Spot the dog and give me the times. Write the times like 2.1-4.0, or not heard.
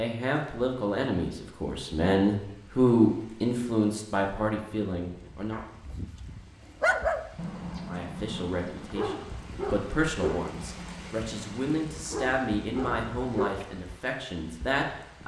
5.5-13.7.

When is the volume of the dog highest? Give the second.
7 s.